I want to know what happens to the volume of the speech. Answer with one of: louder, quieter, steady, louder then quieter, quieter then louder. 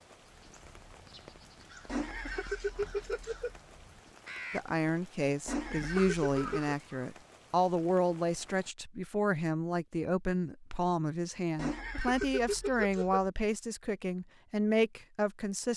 steady.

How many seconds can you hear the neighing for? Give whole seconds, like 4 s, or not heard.
5 s.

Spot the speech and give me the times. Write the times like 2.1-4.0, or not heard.
4.5-15.7.